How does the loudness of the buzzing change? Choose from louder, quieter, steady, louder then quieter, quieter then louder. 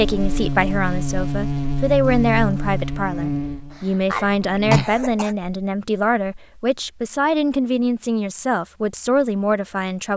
quieter.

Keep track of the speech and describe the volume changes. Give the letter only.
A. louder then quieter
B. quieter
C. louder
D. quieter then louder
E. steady
E.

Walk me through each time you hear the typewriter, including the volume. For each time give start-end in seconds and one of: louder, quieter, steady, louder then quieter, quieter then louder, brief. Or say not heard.
not heard.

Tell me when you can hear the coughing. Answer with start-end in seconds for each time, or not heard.
3.7-5.3.